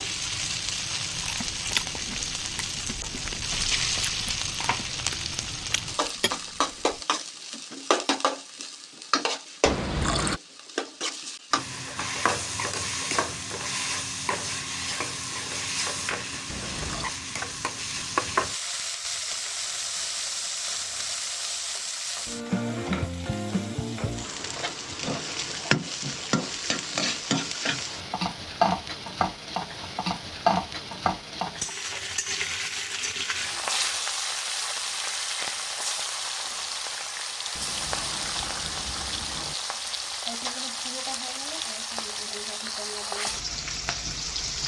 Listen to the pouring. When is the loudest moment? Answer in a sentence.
The volume of the pouring peaks at 10 seconds.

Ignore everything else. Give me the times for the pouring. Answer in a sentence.
You can hear the pouring from 9.7 to 10.4 s, from 16.5 to 17.1 s and from 37.5 to 39.5 s.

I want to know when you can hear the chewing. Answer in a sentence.
The chewing can be heard from 1.1 to 7.0 s.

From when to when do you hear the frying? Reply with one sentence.
The frying can be heard from 0.0 to 44.6 s.